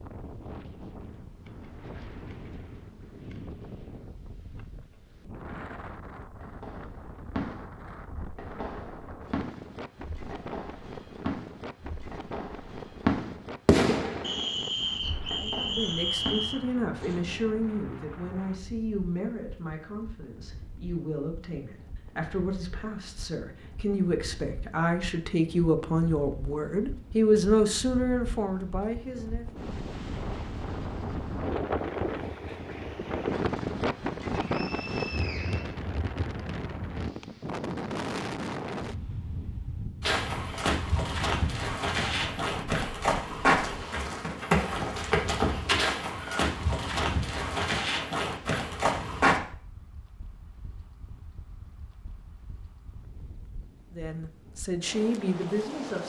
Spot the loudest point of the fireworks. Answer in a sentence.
The loudest moment of the fireworks is at 14 seconds.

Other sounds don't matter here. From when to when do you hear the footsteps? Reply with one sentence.
You can hear the footsteps from 40.0 to 49.4 s.